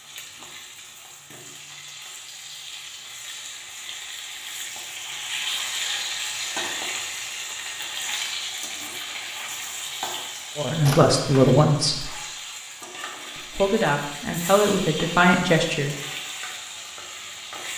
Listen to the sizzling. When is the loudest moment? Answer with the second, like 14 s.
6 s.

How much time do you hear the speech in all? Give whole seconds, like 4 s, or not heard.
4 s.